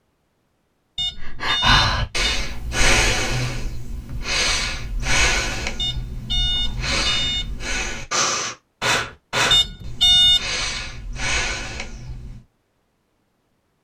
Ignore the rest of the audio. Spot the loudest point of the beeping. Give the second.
10 s.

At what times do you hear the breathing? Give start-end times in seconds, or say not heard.
1.1-12.4.